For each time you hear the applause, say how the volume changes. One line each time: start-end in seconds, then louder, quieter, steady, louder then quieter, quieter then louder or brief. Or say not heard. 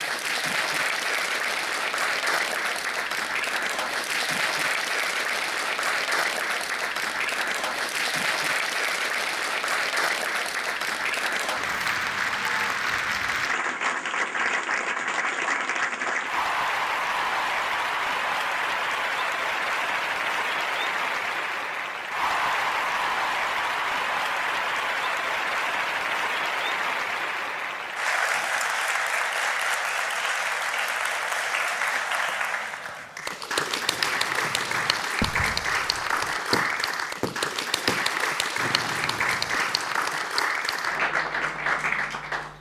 0.0-42.5 steady.